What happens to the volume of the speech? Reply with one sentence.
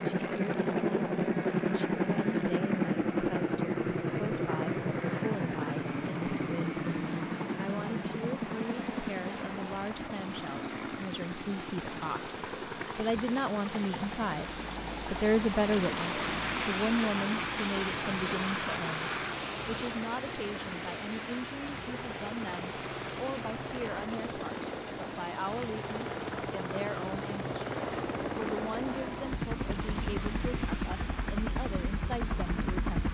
The loudness of the speech goes up, then down.